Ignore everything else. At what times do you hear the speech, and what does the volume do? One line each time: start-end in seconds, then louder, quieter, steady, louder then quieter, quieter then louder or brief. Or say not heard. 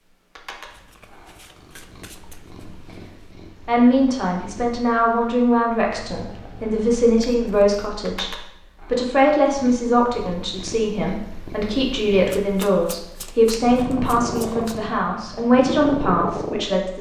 3.6-16.9 steady.